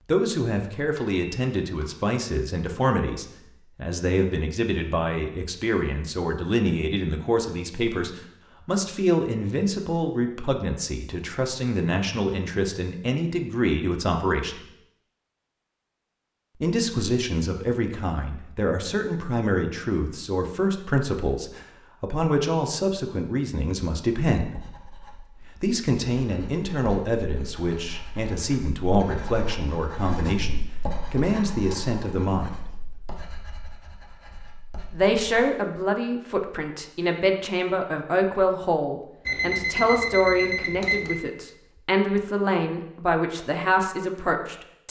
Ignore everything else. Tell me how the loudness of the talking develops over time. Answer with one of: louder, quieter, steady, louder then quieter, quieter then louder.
steady.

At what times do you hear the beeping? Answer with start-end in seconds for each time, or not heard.
0.8-1.9, 39.2-41.2.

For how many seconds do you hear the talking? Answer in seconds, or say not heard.
40 s.